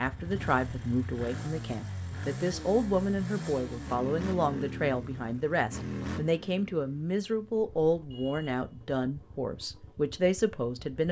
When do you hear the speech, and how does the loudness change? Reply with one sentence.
The speech can be heard from 0.0 to 11.0 s, at a steady volume.